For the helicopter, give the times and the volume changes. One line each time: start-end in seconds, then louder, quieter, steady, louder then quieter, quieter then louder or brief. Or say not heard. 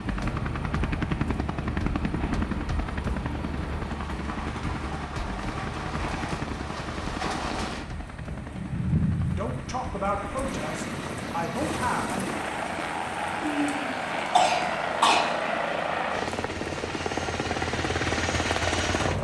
0.0-19.1 quieter then louder.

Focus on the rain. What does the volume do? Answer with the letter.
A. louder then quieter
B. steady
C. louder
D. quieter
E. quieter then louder
A.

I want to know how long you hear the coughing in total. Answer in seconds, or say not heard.
2 s.